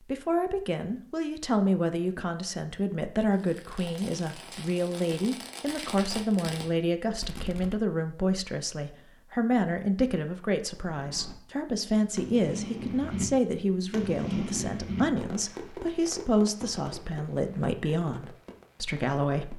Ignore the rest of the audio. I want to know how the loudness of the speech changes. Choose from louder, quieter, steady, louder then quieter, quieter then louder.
steady.